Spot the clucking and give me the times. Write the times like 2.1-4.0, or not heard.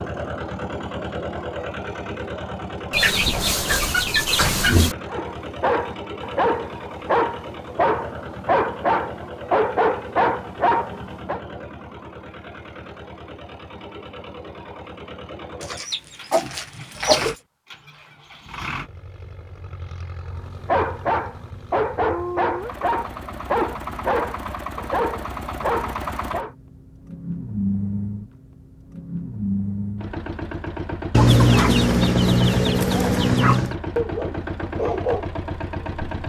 2.9-5.0, 15.6-17.4, 31.1-33.8.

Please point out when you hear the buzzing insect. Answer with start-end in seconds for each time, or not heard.
not heard.